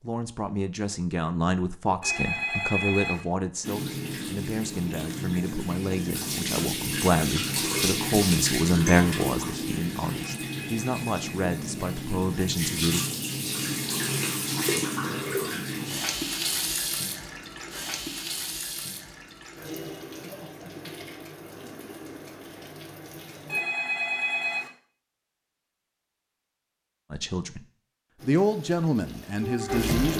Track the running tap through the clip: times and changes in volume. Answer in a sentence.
The running tap can be heard from 3.6 to 23.6 s, getting quieter; and briefly from 28.1 to 30.1 s.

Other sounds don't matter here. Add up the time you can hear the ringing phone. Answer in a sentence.
You can hear the ringing phone for 4 seconds altogether.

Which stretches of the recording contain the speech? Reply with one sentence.
You can hear the speech from 0.0 to 13.1 s and from 27.1 to 30.1 s.